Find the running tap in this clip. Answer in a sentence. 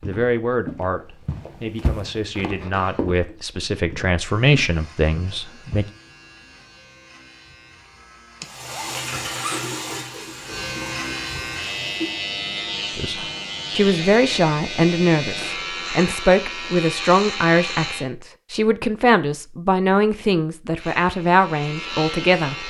You can hear the running tap from 8.4 to 12.3 s.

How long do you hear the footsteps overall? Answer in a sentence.
You can hear the footsteps for 6 seconds altogether.